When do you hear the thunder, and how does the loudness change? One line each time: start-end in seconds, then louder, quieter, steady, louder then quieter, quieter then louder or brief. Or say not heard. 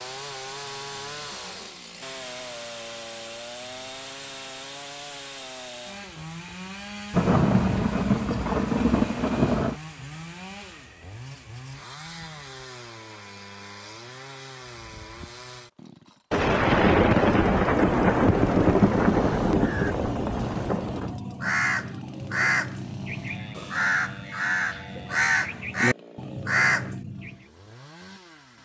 7.1-9.8 brief
16.3-21.1 quieter.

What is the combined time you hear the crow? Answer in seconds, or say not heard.
8 s.